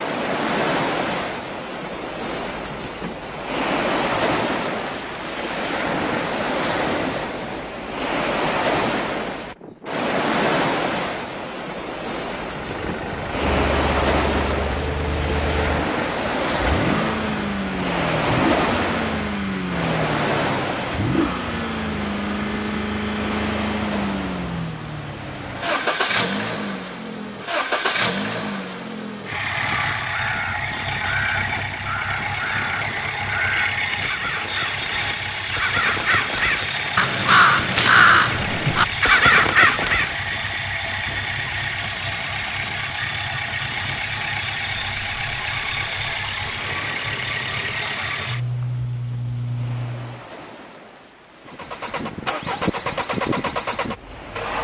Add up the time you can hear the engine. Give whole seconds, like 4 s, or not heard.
41 s.